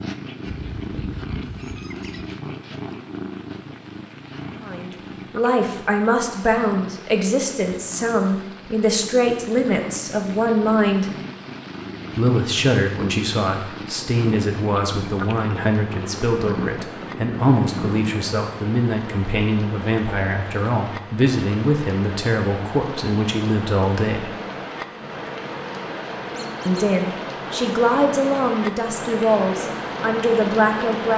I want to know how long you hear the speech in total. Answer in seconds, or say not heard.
23 s.